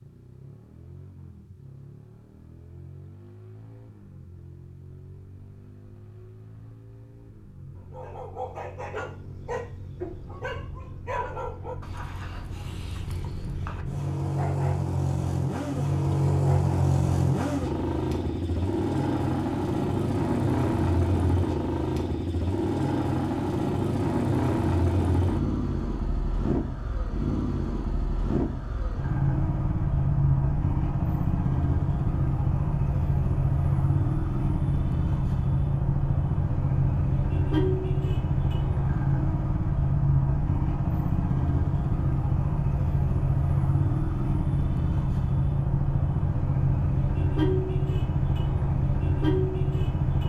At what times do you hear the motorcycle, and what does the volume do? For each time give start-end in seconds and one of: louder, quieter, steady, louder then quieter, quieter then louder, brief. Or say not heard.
0.0-50.2 louder.